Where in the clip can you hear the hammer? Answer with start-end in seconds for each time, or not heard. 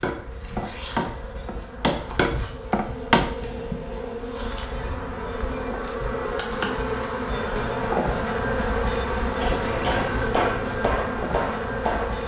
0.0-3.2, 9.4-12.2.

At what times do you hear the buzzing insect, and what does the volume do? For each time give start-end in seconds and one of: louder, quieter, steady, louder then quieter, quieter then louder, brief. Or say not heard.
0.0-12.2 louder.